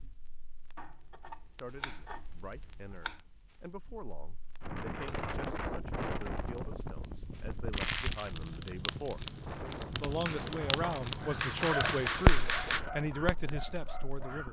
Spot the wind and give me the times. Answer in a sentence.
You can hear the wind from 4.6 to 14.4 s.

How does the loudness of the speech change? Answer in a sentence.
The volume of the speech goes up.